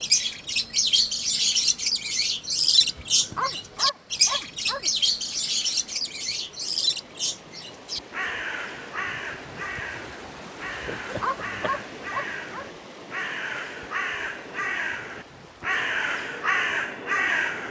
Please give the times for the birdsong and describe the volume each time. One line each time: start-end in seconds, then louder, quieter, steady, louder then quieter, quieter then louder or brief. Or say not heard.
0.0-17.6 quieter then louder.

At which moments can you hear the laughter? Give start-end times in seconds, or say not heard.
10.8-11.8.